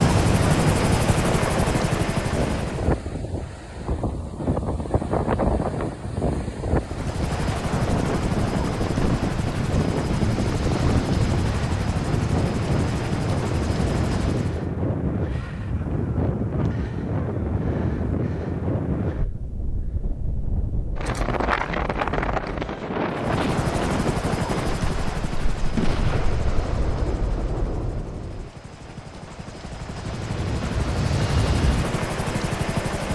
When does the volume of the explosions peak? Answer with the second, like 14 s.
26 s.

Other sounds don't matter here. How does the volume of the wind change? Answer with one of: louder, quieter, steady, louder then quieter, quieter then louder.
steady.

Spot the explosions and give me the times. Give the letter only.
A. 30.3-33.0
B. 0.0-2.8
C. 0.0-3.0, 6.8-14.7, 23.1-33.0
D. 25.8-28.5
D.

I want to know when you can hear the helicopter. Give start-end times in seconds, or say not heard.
0.0-3.0, 6.8-14.7, 23.1-33.0.